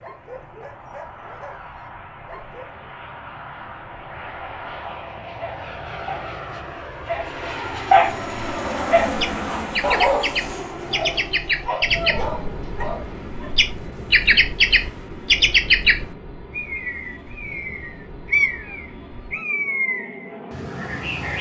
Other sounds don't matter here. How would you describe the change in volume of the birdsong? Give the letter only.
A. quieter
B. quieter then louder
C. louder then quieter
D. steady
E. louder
C.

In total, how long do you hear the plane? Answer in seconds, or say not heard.
21 s.